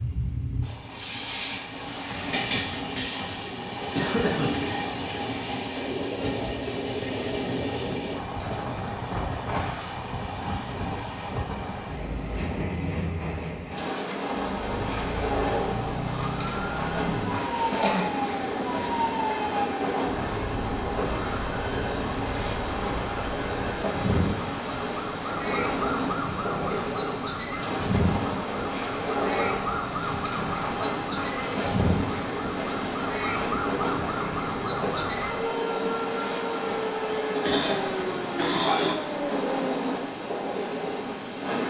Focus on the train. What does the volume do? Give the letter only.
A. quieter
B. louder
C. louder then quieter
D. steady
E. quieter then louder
D.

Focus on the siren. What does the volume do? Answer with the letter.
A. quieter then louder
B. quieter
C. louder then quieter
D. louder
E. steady
E.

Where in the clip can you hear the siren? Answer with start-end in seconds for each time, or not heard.
14.6-39.8.